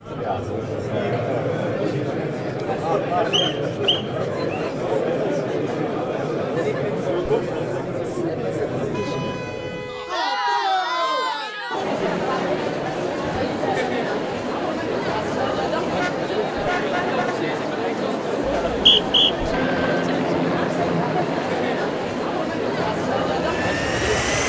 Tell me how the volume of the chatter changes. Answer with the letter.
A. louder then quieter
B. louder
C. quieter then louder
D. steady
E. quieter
D.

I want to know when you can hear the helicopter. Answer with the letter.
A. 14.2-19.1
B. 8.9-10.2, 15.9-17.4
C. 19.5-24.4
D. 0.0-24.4
C.